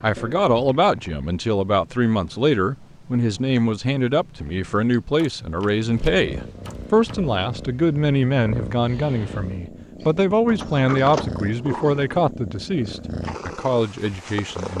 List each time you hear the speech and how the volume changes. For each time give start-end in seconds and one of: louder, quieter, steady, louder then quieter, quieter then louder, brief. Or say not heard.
0.0-14.7 steady.